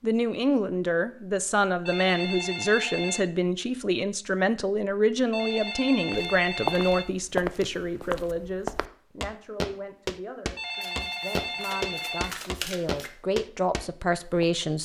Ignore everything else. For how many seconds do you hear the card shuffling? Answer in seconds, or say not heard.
2 s.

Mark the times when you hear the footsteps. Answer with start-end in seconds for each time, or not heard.
6.1-14.4.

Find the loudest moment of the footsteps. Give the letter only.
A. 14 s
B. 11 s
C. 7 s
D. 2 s
C.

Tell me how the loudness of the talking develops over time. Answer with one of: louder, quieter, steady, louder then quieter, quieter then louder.
quieter then louder.